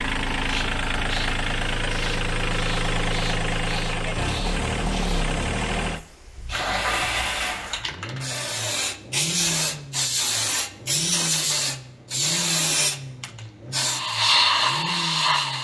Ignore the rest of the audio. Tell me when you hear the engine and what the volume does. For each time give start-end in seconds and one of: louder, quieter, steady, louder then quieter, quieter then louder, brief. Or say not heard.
0.0-15.5 quieter.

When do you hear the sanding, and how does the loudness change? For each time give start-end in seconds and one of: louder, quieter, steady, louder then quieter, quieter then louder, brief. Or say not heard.
not heard.